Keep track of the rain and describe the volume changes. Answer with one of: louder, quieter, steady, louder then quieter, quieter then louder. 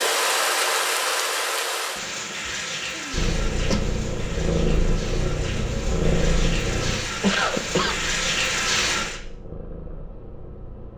quieter then louder.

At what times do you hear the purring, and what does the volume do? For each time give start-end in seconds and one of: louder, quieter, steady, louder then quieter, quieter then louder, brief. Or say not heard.
3.1-10.9 quieter.